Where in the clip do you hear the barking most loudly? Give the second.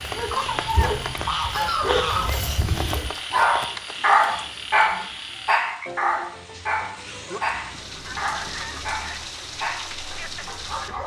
4 s.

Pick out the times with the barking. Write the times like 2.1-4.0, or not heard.
0.0-11.0.